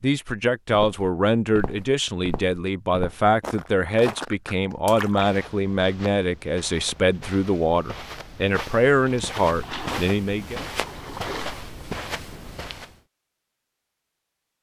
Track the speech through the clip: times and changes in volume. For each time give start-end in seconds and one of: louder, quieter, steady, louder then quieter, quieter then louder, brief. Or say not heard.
0.0-10.6 steady.